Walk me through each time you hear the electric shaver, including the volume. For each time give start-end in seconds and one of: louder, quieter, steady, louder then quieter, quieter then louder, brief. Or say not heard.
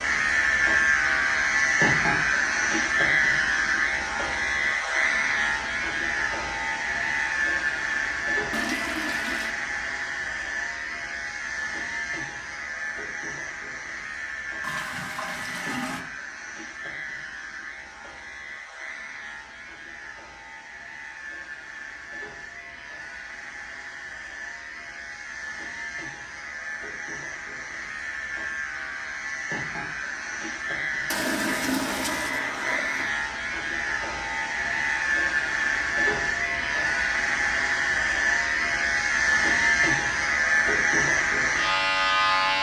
0.0-42.5 quieter then louder.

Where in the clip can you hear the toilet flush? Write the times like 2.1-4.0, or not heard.
8.5-9.6, 14.6-16.1, 31.1-33.1.